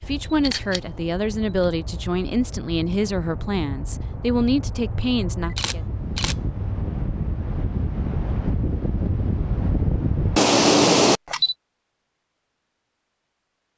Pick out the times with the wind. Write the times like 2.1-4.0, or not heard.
0.0-10.4.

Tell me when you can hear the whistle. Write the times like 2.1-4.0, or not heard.
not heard.